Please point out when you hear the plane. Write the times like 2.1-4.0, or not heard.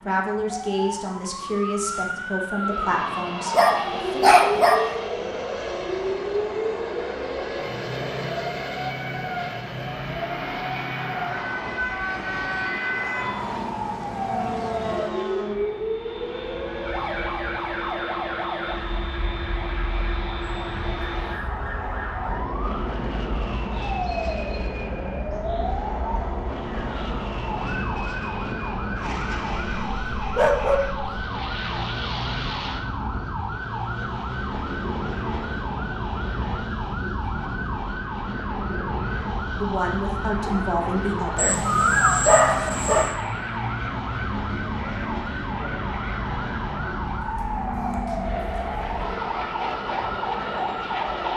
2.5-51.3.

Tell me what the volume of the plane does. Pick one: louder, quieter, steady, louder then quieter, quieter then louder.
steady.